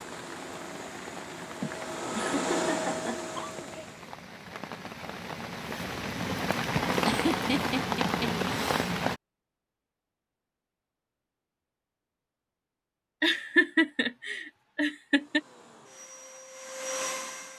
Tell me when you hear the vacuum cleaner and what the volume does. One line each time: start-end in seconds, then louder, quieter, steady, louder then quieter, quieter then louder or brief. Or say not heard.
0.0-4.2 louder then quieter
15.1-17.5 brief.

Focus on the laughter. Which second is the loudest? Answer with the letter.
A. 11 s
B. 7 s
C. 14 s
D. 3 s
C.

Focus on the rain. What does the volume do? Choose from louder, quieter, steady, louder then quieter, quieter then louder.
louder.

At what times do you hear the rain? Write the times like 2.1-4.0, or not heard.
0.0-9.2.